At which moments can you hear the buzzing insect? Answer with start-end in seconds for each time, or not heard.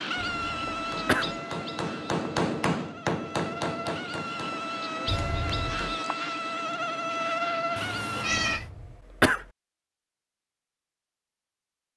0.0-8.6.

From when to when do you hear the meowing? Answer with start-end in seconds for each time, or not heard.
7.8-8.7.